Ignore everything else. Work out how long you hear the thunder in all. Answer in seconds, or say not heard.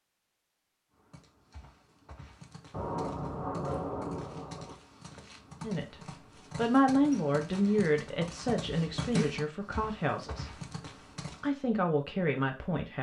2 s.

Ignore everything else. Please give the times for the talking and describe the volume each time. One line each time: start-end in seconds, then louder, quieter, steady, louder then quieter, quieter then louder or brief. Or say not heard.
5.6-10.6 quieter
11.4-12.9 brief.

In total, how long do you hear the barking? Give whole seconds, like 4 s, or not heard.
not heard.